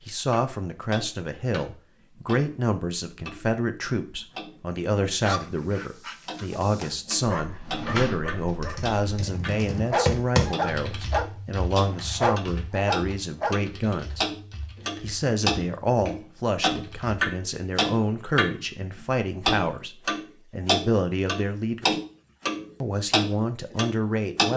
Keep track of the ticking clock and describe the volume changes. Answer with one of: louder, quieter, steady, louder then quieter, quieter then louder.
louder.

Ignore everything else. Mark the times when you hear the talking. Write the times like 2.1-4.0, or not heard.
0.0-14.2, 15.0-22.0, 22.8-24.5.